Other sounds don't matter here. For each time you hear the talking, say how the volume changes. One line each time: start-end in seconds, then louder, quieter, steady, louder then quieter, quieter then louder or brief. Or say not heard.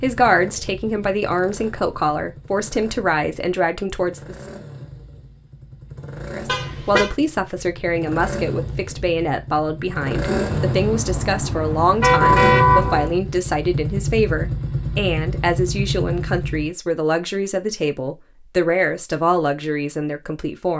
0.0-4.3 steady
6.3-20.7 steady.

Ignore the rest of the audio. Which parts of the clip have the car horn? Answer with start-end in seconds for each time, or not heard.
6.5-7.2, 10.4-13.2.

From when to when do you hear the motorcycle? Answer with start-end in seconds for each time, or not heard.
0.0-16.7.